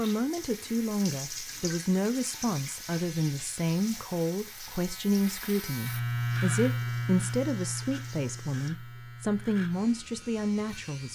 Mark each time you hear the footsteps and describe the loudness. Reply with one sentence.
The footsteps can't be heard in this clip.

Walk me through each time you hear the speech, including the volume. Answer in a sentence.
The speech can be heard from 0.0 to 11.1 s, at a steady volume.